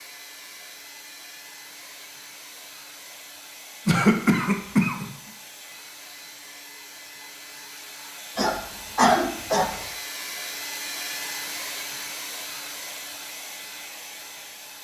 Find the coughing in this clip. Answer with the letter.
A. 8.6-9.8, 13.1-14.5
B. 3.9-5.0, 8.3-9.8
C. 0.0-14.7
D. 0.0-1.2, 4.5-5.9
B.